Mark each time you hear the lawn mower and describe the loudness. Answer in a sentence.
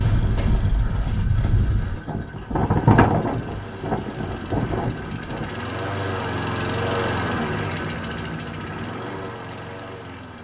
The lawn mower can be heard from 0.0 to 10.4 s, getting louder then quieter.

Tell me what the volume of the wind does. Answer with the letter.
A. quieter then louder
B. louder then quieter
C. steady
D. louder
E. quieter
B.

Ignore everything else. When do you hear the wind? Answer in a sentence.
The wind can be heard from 0.0 to 5.5 s.